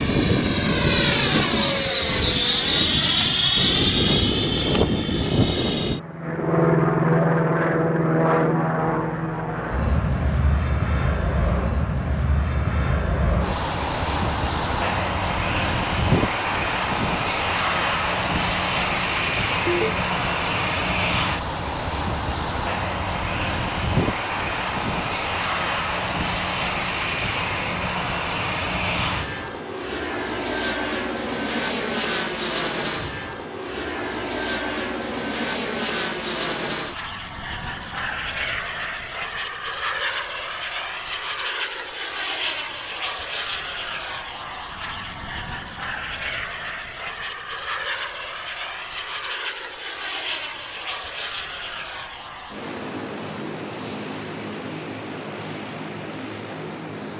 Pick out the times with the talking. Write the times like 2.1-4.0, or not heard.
not heard.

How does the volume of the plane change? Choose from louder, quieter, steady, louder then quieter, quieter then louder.
quieter.